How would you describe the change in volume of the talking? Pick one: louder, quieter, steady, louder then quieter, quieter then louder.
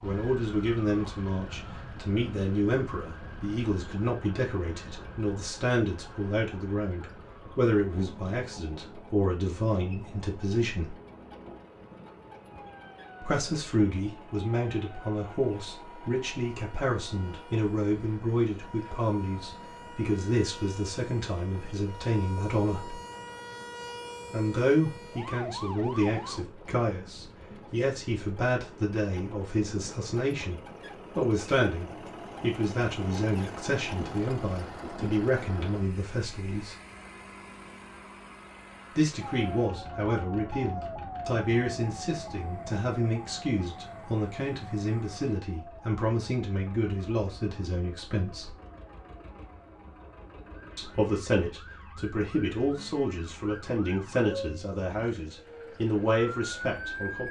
steady.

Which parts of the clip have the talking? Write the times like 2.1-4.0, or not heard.
0.0-10.9, 13.2-23.0, 24.3-36.8, 39.0-48.5, 50.8-57.2.